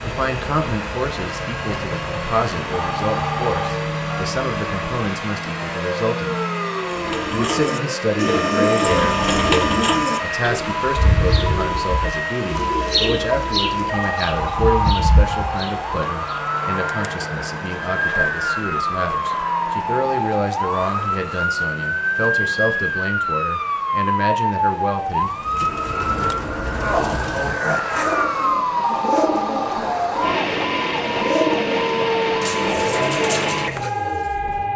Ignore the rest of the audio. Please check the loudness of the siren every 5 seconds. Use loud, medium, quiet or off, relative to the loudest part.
medium, medium, loud, loud, loud, loud, loud.